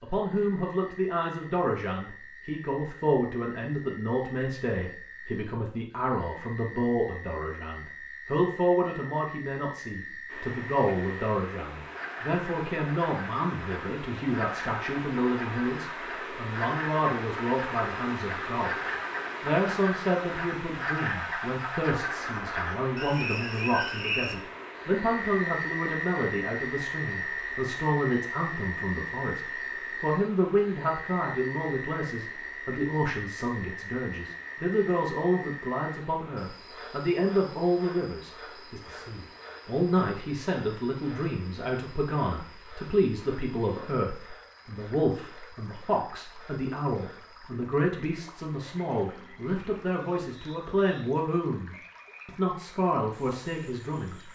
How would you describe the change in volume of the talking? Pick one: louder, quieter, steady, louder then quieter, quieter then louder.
steady.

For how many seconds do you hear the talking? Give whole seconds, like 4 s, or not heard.
54 s.